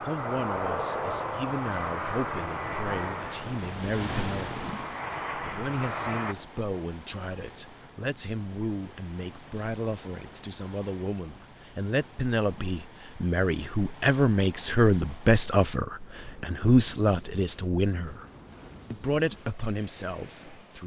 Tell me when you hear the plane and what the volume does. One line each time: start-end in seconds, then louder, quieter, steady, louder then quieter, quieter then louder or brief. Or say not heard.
0.0-6.3 quieter then louder.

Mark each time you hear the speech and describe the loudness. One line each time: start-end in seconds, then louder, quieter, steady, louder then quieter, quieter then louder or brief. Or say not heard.
0.0-18.2 louder
18.9-20.8 brief.